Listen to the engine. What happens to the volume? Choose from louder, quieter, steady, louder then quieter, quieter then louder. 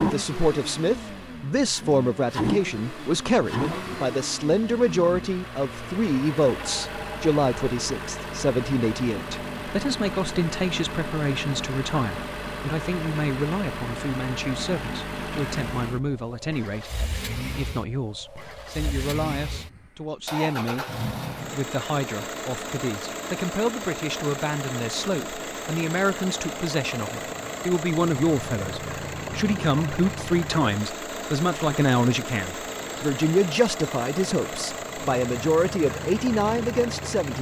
steady.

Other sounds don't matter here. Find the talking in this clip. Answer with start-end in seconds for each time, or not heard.
0.0-20.9, 21.5-37.3.